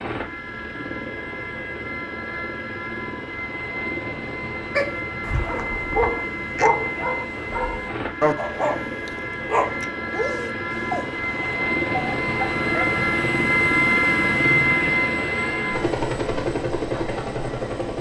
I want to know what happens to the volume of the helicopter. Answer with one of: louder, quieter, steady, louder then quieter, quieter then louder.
louder.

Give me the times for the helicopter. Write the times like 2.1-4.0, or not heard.
0.0-17.9.